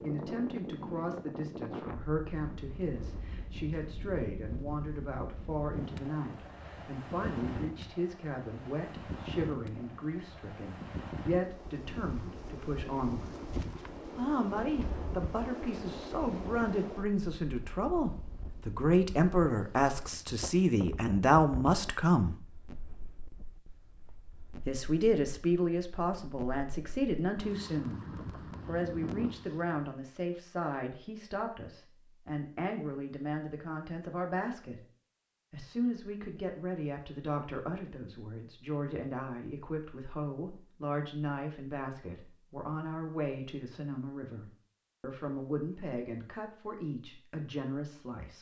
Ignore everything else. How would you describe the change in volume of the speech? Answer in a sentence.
The loudness of the speech goes up, then down.